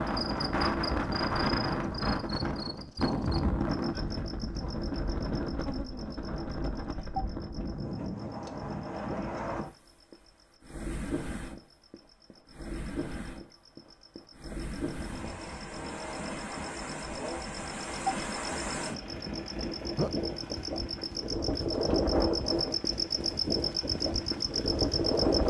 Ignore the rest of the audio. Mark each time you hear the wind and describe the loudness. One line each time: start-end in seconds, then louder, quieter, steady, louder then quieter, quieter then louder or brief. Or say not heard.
0.0-25.4 quieter then louder.